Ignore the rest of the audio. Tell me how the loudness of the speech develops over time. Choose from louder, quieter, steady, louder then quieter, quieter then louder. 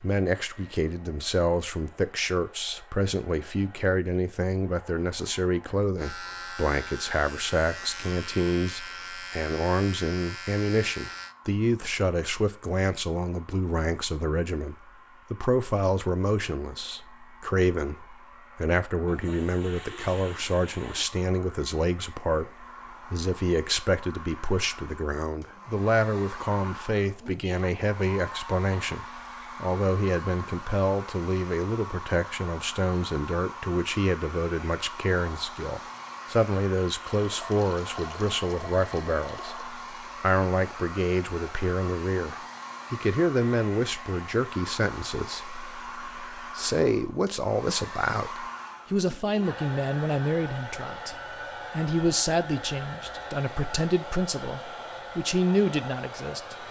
steady.